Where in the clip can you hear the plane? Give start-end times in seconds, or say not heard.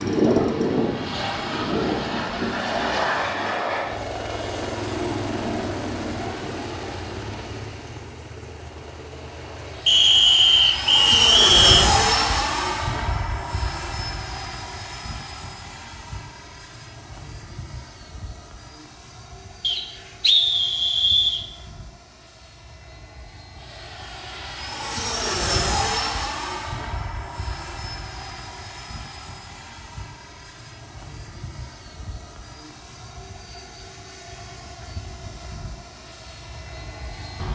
0.0-37.5.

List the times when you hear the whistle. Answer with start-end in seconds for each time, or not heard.
9.8-11.9, 19.6-21.4.